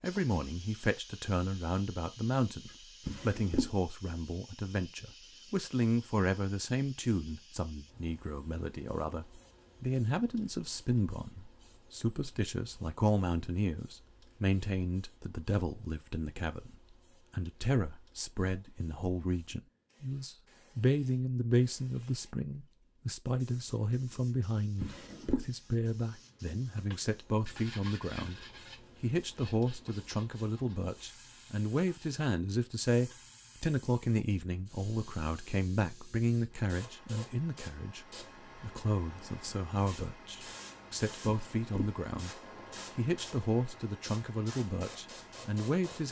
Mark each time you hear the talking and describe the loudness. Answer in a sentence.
The talking can be heard from 0.0 to 46.0 s, at a steady volume.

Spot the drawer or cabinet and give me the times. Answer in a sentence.
You can hear the drawer or cabinet from 3.0 to 3.8 s, from 24.8 to 25.4 s and from 41.2 to 41.7 s.